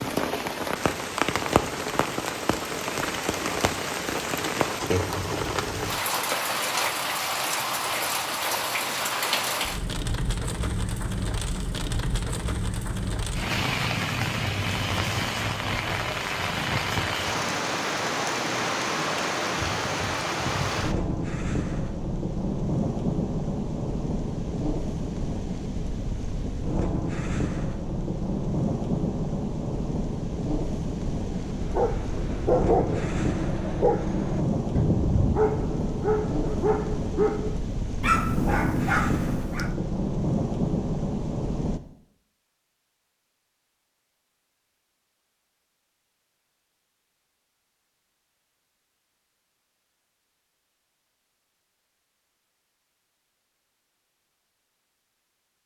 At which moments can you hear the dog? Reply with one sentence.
You can hear the dog from 31.2 to 39.8 s.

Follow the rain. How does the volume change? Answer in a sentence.
The volume of the rain stays about the same.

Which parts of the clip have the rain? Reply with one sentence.
The rain can be heard from 0.0 to 41.8 s.